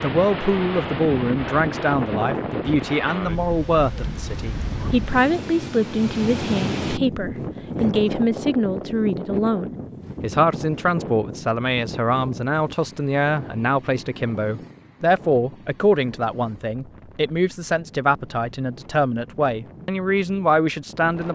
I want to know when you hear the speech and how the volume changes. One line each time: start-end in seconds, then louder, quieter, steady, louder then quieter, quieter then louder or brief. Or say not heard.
0.0-21.2 steady.